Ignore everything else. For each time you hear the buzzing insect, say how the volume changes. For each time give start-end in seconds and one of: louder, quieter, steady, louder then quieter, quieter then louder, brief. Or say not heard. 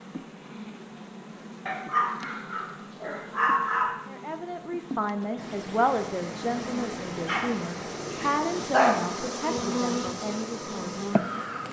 0.0-11.6 louder.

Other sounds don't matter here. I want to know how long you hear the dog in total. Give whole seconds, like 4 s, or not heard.
4 s.